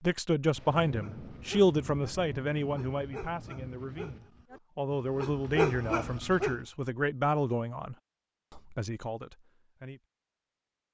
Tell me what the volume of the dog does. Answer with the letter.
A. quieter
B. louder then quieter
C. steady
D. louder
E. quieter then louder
E.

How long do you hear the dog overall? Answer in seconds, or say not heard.
6 s.